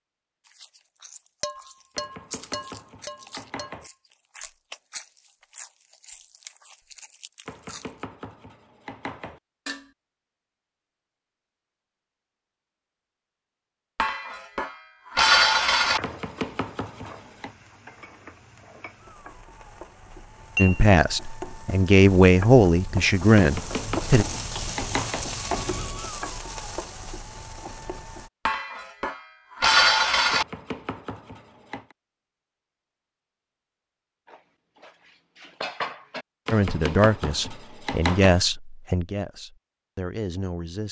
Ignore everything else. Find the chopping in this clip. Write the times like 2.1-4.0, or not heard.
1.9-3.9, 7.5-9.4, 16.0-17.6, 23.4-25.3, 30.3-31.9, 36.5-38.4.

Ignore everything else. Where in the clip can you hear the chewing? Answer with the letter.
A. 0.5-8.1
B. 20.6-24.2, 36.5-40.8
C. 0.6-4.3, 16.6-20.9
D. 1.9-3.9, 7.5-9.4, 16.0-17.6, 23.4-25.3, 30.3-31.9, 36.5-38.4
A.